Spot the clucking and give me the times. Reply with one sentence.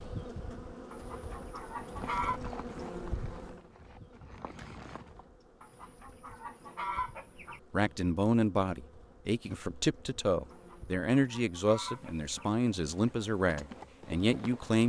The clucking can be heard from 0.9 to 2.4 s, from 5.6 to 7.6 s and from 10.5 to 12.5 s.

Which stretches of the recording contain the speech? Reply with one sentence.
You can hear the speech from 7.7 to 14.8 s.